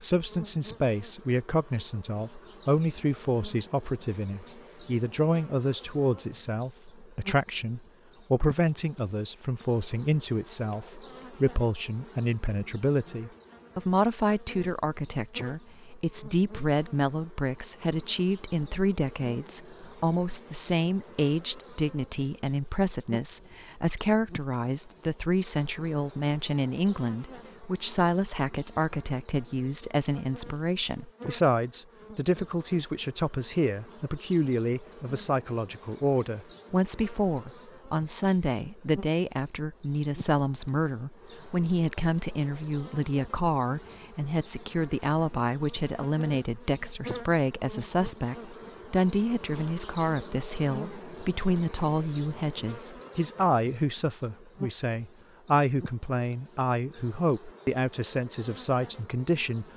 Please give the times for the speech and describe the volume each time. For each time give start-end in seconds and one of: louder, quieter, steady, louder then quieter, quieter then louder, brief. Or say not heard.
0.0-59.6 steady.